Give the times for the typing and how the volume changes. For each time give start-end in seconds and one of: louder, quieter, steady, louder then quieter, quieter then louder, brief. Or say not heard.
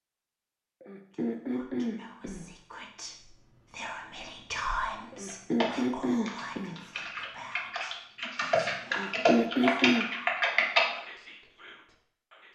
5.2-10.8 louder.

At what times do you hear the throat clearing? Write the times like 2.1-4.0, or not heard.
0.8-2.5, 5.1-6.8, 8.9-10.1.